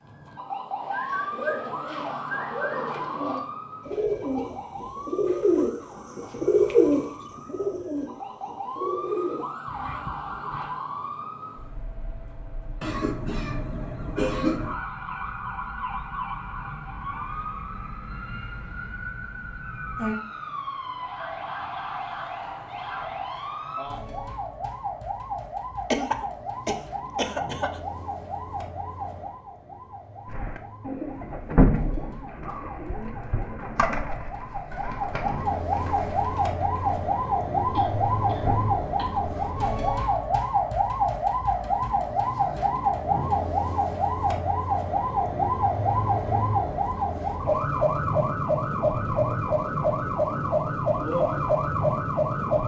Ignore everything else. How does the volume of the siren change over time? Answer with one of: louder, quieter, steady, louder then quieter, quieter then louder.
louder.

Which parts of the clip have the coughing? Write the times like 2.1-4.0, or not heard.
12.8-14.8, 25.9-27.8, 37.6-39.3.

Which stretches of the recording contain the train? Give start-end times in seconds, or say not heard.
not heard.